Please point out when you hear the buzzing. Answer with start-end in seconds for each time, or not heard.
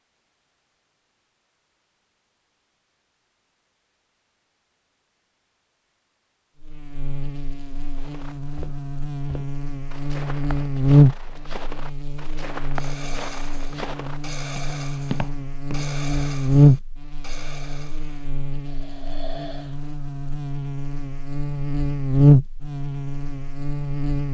6.6-24.2.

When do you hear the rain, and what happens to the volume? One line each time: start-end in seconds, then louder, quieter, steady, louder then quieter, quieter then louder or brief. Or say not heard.
not heard.